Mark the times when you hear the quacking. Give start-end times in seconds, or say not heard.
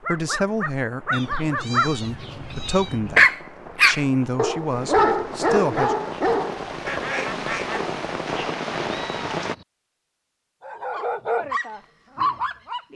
6.8-7.8.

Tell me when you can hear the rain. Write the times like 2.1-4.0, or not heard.
0.0-9.6.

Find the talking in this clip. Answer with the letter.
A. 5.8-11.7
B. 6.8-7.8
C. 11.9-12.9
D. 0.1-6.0
D.